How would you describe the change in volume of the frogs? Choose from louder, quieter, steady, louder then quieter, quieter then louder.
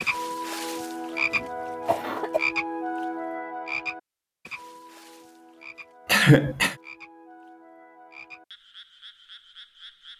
quieter.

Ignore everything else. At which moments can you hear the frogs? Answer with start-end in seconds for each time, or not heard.
0.0-10.1.